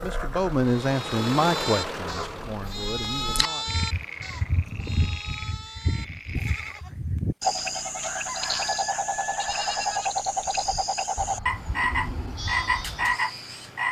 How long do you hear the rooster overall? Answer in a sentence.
The rooster can be heard for 2 seconds in total.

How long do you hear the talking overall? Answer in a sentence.
The talking can be heard for 4 seconds in total.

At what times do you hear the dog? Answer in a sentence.
You can't hear the dog here.